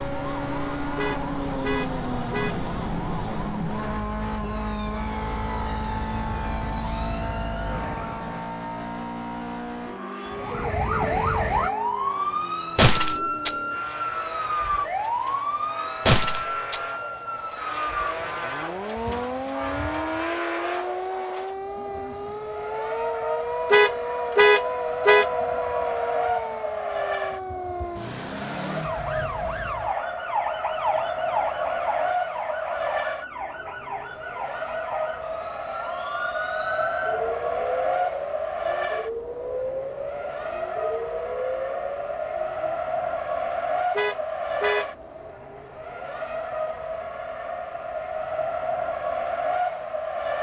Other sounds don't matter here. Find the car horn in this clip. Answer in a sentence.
You can hear the car horn from 0.9 to 2.5 s, from 23.7 to 25.2 s and from 44.0 to 44.9 s.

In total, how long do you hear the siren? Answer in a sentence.
The siren can be heard for 41 seconds in total.